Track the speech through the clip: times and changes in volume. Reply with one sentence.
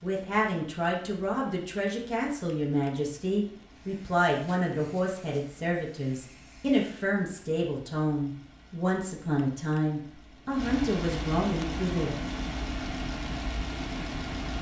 You can hear the speech from 0.0 to 12.2 s, at a steady volume.